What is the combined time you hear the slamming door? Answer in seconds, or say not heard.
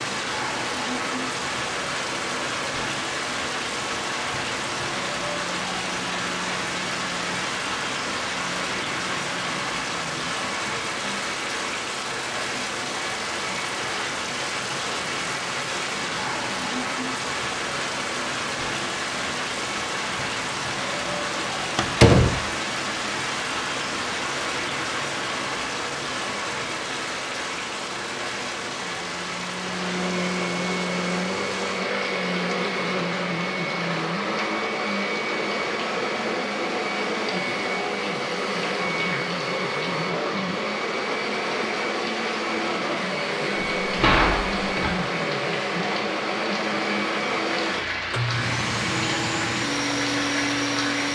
2 s.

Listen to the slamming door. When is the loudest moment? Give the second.
22 s.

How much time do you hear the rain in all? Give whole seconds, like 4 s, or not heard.
51 s.